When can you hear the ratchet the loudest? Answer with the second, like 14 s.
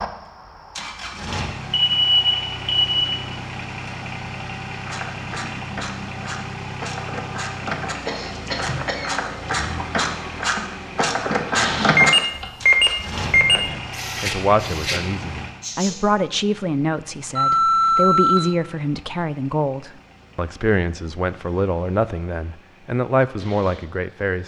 12 s.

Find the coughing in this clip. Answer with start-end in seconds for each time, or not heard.
8.1-9.2, 15.6-16.1.